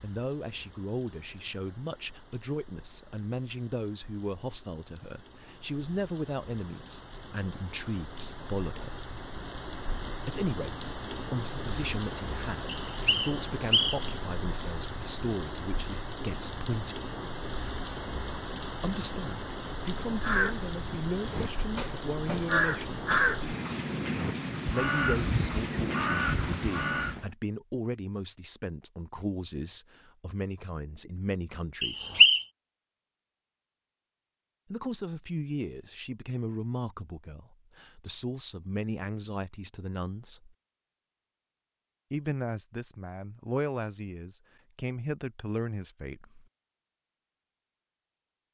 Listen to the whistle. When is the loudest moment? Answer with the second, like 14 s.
32 s.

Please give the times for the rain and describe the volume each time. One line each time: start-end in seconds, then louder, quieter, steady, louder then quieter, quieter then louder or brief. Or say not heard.
0.0-27.3 louder.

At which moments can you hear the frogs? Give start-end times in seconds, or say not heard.
not heard.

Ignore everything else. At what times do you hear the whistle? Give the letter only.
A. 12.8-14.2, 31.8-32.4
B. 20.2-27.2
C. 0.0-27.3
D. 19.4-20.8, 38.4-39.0
A.